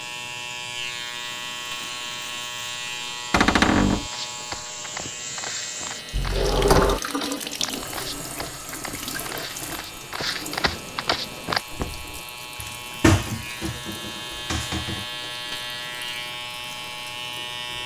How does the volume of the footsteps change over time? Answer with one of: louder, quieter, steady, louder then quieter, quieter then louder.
louder.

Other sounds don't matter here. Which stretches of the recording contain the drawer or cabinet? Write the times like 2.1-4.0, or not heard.
3.3-4.1, 6.1-7.0, 12.6-15.1.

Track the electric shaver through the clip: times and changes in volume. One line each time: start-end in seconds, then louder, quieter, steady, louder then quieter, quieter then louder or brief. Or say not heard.
0.0-17.8 quieter then louder.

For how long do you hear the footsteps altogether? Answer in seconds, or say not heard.
8 s.